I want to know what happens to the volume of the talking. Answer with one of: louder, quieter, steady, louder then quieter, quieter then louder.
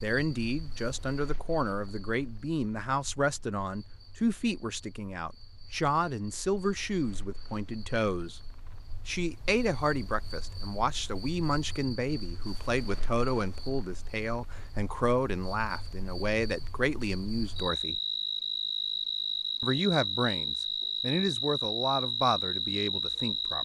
steady.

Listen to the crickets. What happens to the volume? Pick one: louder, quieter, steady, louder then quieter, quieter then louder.
louder.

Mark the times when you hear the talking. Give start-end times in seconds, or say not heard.
0.0-8.4, 9.1-18.0, 19.6-23.6.